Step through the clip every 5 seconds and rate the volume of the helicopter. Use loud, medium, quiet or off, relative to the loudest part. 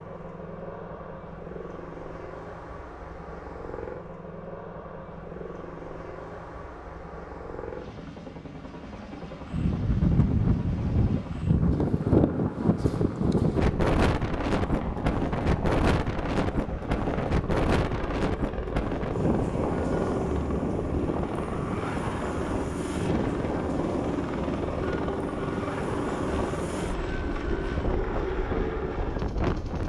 medium, medium, medium, loud, loud, loud.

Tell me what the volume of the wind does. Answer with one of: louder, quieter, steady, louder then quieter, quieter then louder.
quieter.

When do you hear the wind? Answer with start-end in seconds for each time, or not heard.
9.5-29.8.